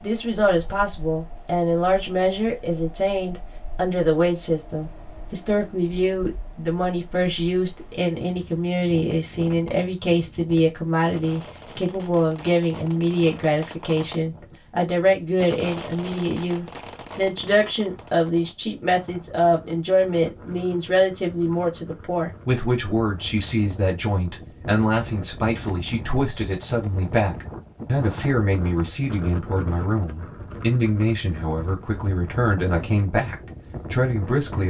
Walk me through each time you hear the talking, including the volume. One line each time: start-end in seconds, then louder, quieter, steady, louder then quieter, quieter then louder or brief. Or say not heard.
0.0-34.6 steady.